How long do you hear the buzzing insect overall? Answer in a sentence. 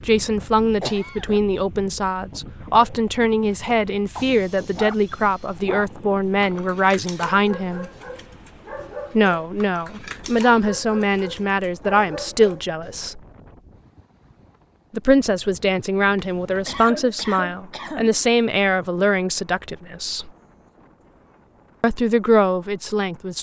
You can't hear the buzzing insect here.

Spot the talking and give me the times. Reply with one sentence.
You can hear the talking from 0.1 to 7.8 s, from 9.2 to 13.2 s, from 14.9 to 20.3 s and from 21.8 to 23.3 s.